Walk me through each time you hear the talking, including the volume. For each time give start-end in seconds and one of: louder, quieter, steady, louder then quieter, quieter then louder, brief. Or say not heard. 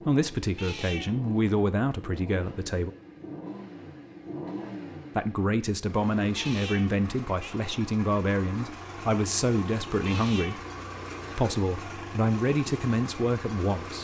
0.0-2.9 brief
5.2-10.6 steady
11.3-14.0 brief.